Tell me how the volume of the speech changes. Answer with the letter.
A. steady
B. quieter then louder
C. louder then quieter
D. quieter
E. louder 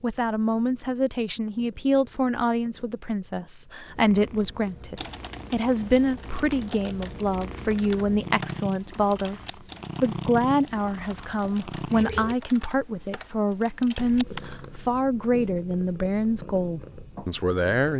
A.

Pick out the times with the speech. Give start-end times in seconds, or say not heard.
0.0-17.9.